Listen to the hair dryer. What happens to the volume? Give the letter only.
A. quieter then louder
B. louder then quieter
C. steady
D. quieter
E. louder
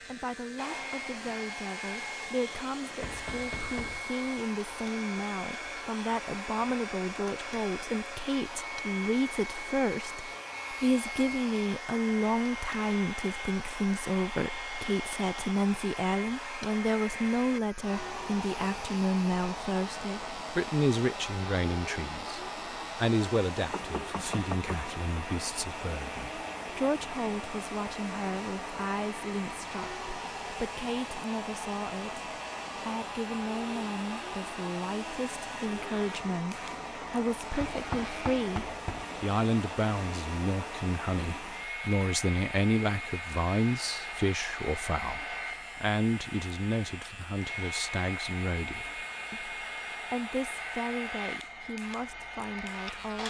C.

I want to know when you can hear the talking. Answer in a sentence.
The talking can be heard from 0.0 to 53.2 s.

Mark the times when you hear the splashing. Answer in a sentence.
The splashing can't be heard in this clip.